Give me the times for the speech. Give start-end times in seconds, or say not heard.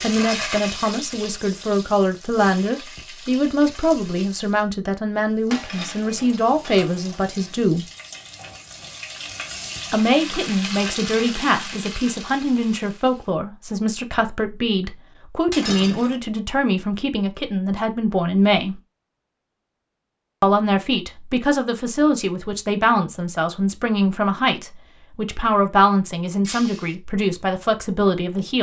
0.0-7.8, 9.9-18.8, 20.4-28.5.